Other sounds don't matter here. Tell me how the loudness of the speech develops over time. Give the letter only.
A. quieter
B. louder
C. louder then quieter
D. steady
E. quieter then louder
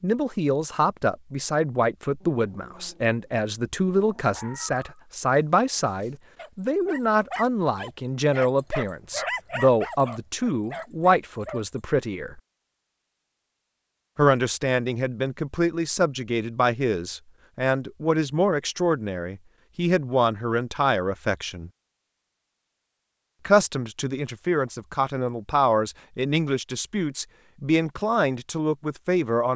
D.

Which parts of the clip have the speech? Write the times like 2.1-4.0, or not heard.
0.0-12.4, 14.2-21.7, 23.4-29.5.